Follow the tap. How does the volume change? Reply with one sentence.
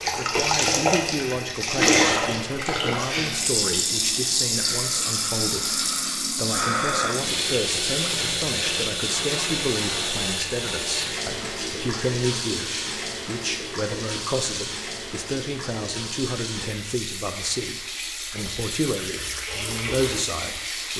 The volume of the tap goes down.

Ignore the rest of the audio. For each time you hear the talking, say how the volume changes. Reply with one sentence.
The talking can be heard from 0.1 to 20.9 s, at a steady volume.